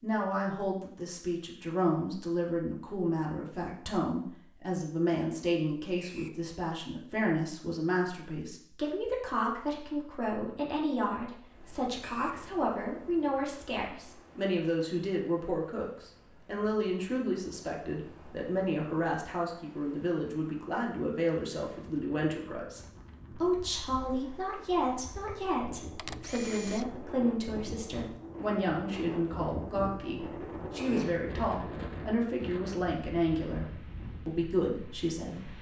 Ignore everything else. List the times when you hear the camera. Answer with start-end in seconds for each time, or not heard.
25.9-27.0.